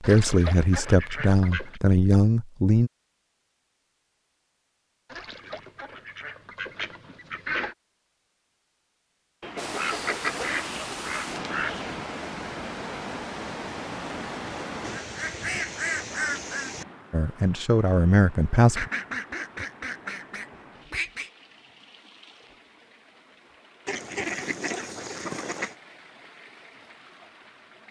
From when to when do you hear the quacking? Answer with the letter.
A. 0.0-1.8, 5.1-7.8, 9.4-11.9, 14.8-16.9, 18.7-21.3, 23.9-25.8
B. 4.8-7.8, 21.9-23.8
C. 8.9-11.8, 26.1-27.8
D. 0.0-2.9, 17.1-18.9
A.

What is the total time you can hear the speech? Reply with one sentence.
The speech can be heard for 5 seconds in total.